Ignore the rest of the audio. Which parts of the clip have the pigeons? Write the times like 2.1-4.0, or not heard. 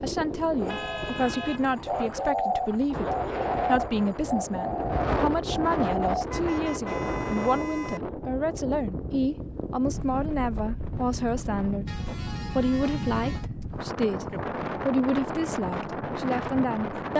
0.6-6.2.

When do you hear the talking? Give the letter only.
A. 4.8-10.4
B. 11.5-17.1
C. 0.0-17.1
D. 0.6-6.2
C.